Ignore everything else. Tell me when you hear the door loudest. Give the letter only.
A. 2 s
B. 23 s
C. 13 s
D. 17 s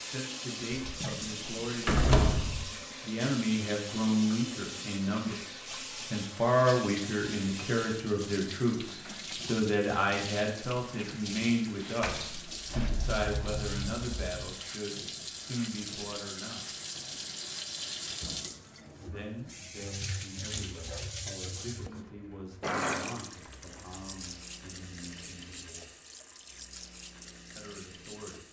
A.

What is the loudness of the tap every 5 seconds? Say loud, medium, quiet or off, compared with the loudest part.
loud, loud, loud, loud, loud, medium.